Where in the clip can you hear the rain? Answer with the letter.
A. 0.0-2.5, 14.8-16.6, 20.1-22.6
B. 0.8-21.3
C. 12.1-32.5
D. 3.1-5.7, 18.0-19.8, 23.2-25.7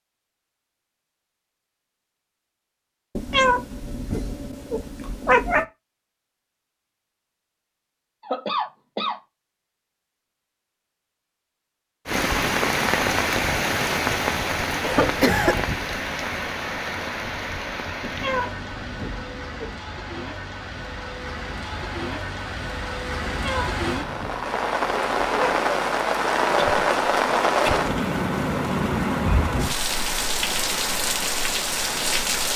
C.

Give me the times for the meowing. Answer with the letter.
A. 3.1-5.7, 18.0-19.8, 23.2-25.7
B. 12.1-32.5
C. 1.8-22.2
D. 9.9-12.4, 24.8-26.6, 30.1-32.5
A.